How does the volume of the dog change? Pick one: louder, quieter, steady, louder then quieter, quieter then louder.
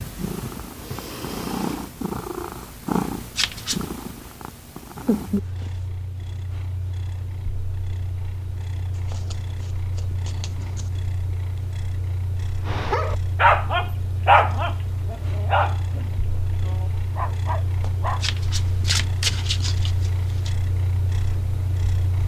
quieter then louder.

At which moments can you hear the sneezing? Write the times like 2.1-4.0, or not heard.
not heard.